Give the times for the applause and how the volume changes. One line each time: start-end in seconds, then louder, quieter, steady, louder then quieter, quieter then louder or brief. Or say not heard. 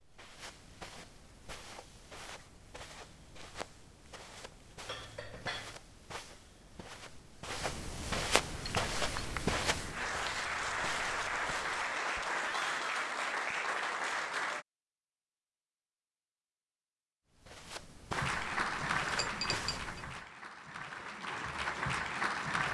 8.5-14.7 louder
18.1-22.6 quieter then louder.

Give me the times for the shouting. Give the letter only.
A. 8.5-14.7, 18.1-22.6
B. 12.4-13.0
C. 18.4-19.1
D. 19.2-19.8
B.